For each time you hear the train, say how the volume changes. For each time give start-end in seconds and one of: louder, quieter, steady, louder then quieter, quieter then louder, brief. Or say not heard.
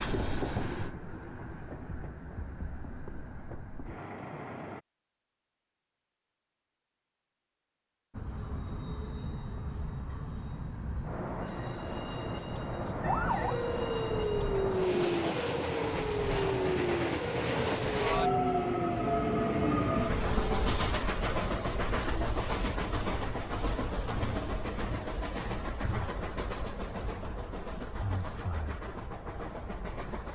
0.0-4.8 quieter
8.1-30.2 louder then quieter.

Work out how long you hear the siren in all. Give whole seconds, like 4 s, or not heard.
8 s.